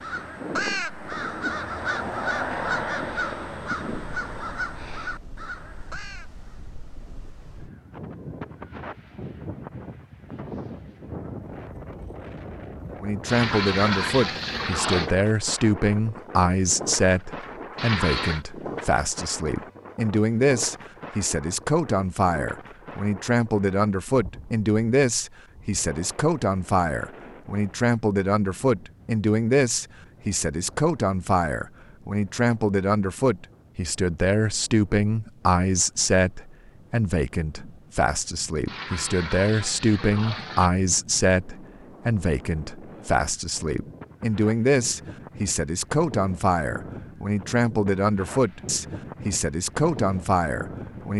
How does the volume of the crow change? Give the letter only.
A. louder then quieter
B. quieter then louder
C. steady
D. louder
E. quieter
E.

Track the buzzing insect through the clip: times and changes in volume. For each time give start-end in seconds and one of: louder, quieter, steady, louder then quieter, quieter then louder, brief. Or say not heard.
not heard.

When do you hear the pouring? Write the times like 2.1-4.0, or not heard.
13.2-15.1, 17.8-18.4, 38.6-40.7.